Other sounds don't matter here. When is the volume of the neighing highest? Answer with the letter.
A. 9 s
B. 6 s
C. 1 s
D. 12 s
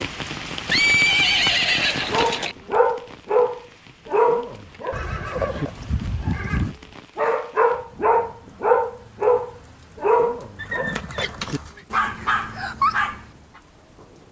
C.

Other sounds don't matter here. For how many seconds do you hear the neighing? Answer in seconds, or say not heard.
5 s.